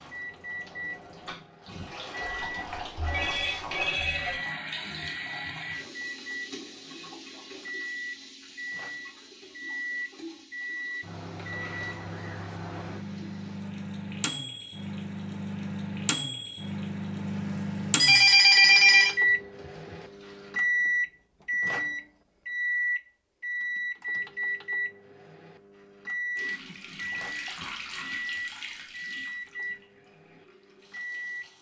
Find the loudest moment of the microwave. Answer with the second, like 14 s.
19 s.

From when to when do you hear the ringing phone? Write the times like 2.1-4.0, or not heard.
2.4-4.4, 18.0-19.1.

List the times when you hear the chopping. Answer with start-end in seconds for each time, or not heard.
not heard.